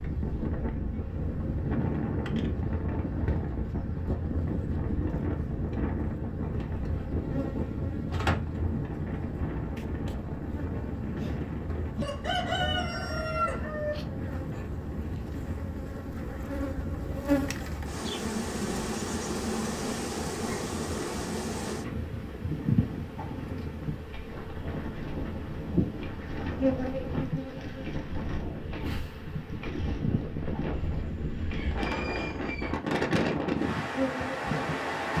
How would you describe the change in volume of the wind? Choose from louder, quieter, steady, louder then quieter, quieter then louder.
quieter then louder.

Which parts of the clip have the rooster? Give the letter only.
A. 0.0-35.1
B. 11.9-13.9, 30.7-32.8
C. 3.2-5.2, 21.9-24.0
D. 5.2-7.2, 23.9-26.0
B.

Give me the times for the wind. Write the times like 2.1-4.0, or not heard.
0.0-35.1.